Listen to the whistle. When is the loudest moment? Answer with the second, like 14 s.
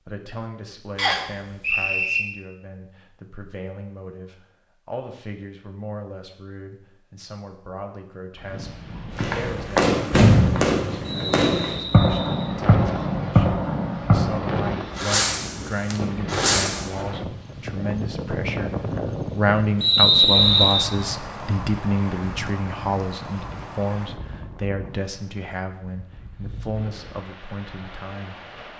20 s.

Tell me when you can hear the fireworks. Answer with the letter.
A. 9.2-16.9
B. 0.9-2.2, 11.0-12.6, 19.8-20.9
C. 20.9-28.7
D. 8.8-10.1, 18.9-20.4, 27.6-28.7
A.